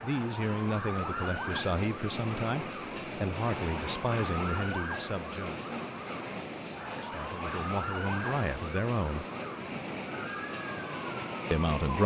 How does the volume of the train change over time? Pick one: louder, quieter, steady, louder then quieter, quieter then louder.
steady.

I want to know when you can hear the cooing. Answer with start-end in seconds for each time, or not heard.
not heard.